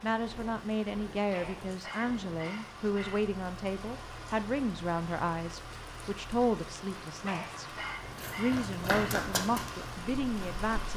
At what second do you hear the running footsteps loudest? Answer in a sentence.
The loudest moment of the running footsteps is at 9 seconds.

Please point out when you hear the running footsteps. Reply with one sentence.
The running footsteps can be heard from 8.1 to 10.9 s.